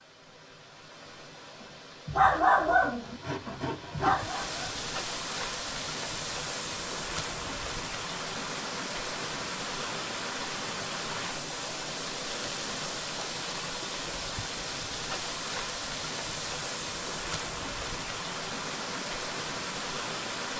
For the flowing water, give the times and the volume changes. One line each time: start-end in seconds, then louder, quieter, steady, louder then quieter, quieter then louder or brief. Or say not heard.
0.0-20.5 louder.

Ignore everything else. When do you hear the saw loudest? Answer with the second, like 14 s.
4 s.